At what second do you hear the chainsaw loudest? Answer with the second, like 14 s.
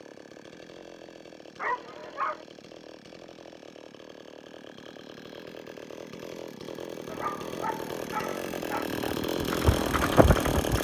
10 s.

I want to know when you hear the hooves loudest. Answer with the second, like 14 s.
10 s.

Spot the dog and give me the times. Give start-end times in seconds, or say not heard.
1.6-2.5, 7.0-8.8.